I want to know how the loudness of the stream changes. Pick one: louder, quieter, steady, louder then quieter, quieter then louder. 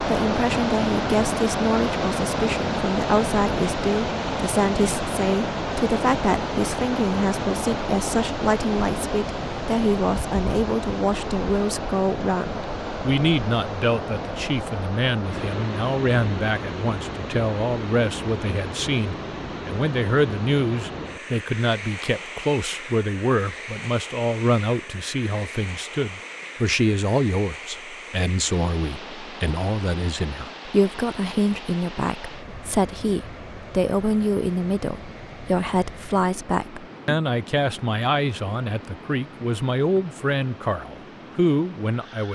quieter.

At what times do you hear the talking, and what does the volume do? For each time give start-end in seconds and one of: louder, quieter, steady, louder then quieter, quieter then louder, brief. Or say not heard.
0.1-42.2 steady.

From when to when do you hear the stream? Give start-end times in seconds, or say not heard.
0.0-42.2.